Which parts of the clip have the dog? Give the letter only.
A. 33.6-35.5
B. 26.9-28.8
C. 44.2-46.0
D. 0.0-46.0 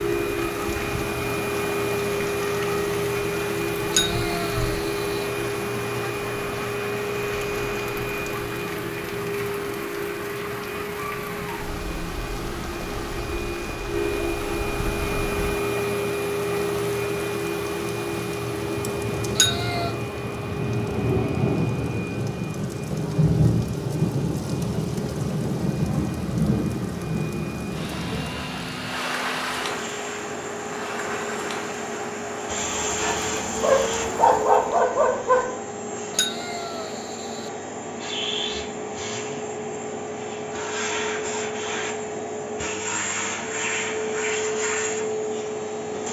A.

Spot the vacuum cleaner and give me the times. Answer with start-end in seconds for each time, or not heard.
0.0-46.0.